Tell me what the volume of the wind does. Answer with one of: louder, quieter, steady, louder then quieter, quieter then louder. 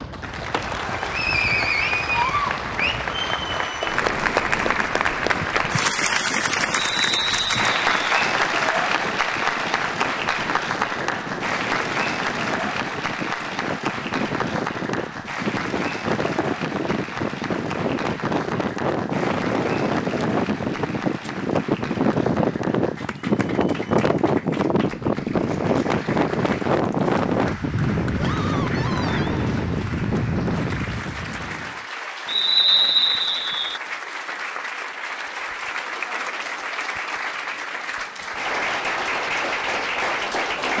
louder.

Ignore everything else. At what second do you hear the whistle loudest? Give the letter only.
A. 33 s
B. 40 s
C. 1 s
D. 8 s
A.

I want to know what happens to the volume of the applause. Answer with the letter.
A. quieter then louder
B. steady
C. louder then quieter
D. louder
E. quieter
A.